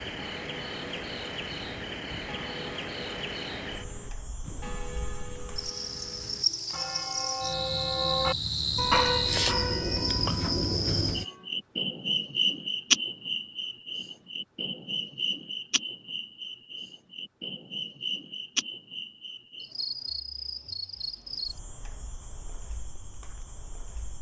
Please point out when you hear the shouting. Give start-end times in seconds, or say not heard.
not heard.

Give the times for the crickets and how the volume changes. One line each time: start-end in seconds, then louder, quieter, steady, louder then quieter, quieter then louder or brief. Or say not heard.
0.0-24.1 louder then quieter.